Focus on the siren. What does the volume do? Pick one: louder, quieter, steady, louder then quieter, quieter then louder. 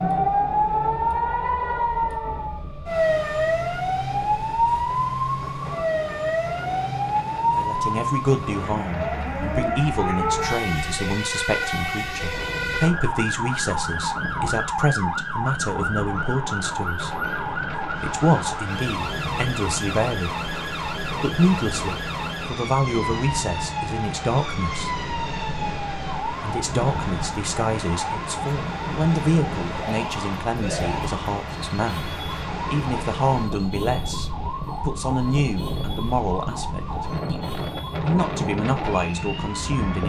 quieter.